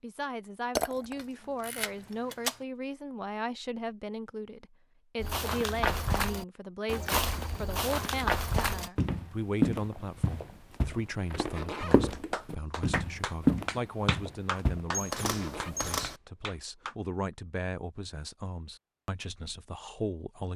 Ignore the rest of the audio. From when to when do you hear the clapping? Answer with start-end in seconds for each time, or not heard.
11.9-16.9.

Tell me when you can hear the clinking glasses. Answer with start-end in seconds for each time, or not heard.
0.8-1.9.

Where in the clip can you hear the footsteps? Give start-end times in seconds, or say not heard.
5.2-15.7.